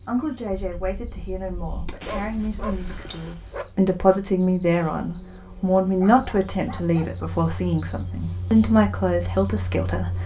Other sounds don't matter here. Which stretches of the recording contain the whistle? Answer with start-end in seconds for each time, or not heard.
not heard.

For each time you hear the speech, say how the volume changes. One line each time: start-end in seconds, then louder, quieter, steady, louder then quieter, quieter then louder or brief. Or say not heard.
0.1-10.2 louder.